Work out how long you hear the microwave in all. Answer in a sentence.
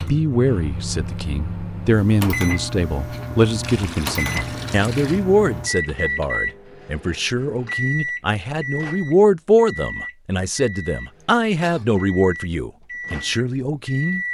The microwave can be heard for 14 seconds in total.